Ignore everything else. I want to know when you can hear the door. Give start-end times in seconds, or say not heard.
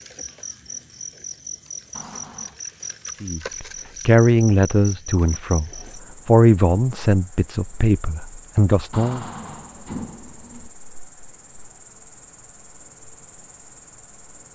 1.9-2.6, 8.9-10.7.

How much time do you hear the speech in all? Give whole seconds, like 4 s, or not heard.
6 s.